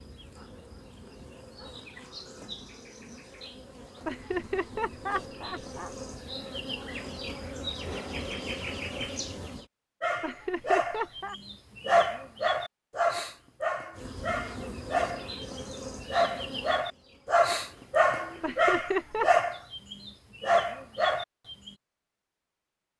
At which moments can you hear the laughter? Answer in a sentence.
You can hear the laughter from 4.0 to 6.0 s, from 10.2 to 11.3 s and from 18.4 to 19.3 s.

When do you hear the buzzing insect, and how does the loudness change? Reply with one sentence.
You can hear the buzzing insect from 0.0 to 9.7 s, getting louder; and from 13.9 to 18.6 s, getting quieter.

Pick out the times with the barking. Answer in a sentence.
The barking can be heard from 10.0 to 21.7 s.